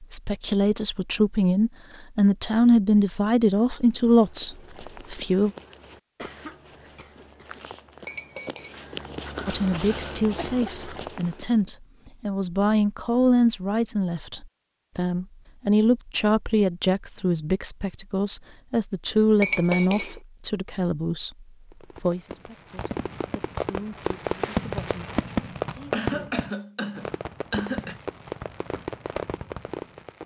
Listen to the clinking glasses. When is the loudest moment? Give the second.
20 s.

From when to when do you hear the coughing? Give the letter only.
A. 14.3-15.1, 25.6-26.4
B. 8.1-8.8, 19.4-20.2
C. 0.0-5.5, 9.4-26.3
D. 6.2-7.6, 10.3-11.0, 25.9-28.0
D.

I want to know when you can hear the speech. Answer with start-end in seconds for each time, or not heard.
0.0-5.5, 9.4-26.3.